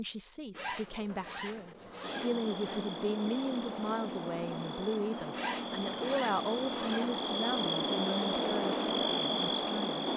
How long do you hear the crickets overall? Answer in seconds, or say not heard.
8 s.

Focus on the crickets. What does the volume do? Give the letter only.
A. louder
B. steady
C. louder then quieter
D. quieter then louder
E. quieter
A.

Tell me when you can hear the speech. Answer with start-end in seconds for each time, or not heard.
0.0-10.1.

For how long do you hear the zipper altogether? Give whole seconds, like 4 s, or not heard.
4 s.